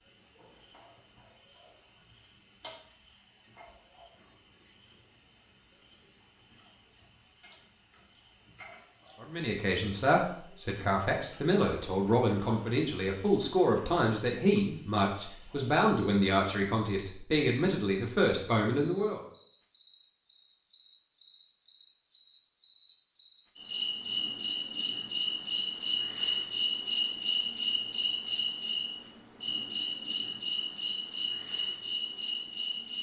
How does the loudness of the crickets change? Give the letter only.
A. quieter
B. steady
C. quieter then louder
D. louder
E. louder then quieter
D.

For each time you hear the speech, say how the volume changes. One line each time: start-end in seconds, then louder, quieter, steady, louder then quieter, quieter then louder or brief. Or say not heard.
9.2-19.2 steady.